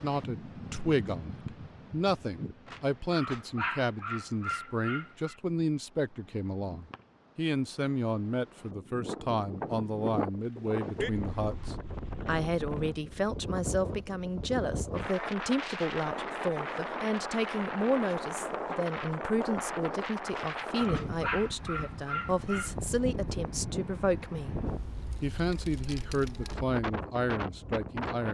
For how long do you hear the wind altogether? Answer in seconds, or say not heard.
28 s.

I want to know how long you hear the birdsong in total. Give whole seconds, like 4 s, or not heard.
not heard.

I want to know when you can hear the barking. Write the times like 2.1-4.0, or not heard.
2.6-5.3, 20.3-22.8.